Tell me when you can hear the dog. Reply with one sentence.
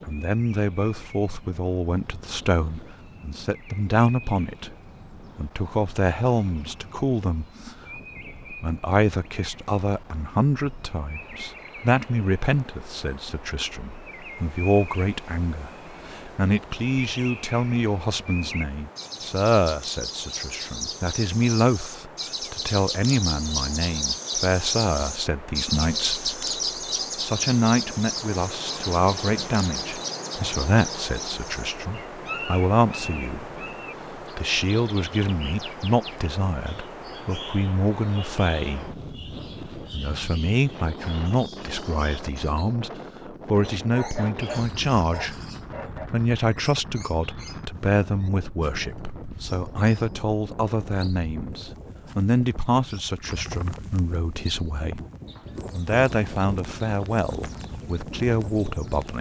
You can hear the dog from 43.9 to 46.1 s.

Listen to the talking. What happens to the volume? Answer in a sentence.
The loudness of the talking stays about the same.